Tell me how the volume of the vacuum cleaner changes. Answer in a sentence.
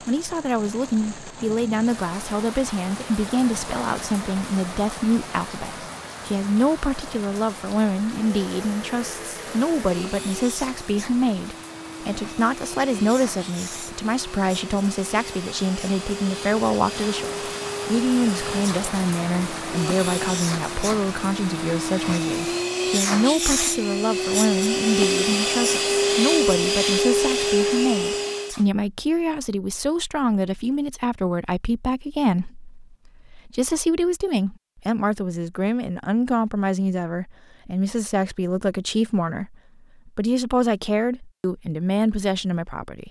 The volume of the vacuum cleaner goes up.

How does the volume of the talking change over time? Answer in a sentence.
The volume of the talking stays about the same.